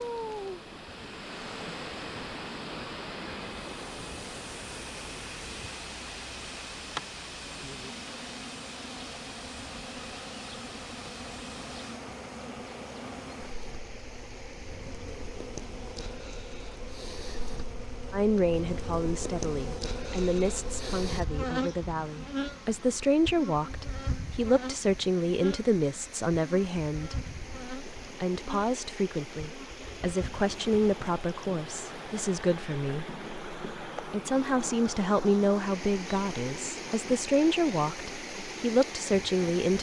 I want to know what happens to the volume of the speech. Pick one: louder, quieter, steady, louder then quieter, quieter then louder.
steady.